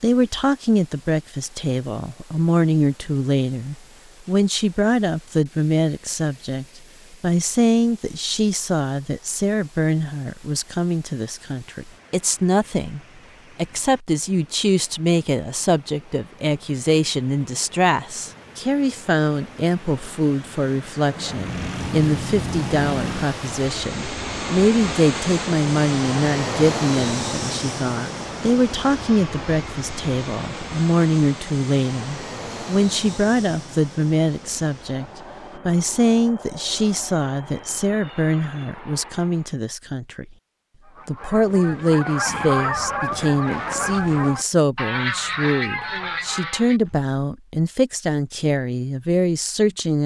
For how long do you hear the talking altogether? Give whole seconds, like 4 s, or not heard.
49 s.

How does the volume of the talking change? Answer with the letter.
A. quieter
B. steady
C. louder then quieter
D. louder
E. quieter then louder
B.